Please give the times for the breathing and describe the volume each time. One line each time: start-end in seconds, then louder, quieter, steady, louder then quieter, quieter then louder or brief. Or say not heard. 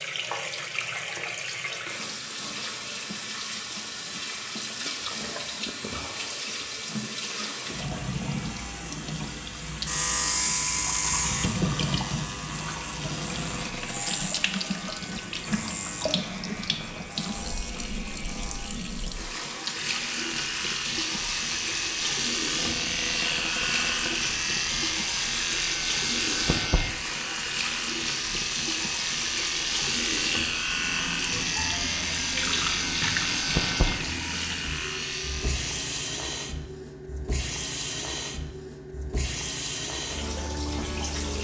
not heard.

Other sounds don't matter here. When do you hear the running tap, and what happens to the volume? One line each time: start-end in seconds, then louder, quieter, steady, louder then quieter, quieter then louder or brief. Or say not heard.
0.0-41.3 steady.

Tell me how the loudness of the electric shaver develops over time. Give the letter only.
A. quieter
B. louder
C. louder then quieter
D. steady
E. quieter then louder
E.